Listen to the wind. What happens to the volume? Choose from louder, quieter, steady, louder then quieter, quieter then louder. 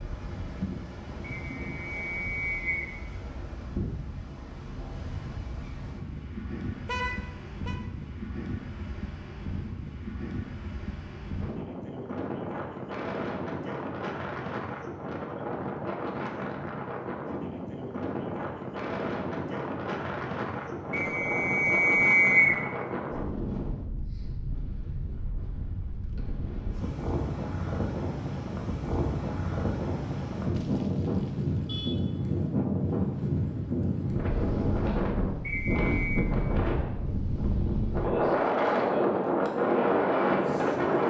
louder.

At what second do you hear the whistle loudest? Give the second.
22 s.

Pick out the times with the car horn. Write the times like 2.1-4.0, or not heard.
6.8-7.8, 30.5-32.0.